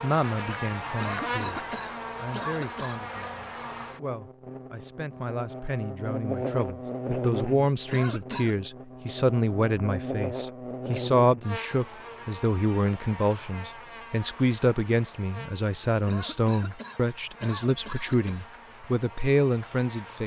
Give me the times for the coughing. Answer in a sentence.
You can hear the coughing from 1.0 to 3.0 s, from 7.9 to 8.6 s and from 16.1 to 18.5 s.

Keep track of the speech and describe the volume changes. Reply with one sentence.
The volume of the speech goes up.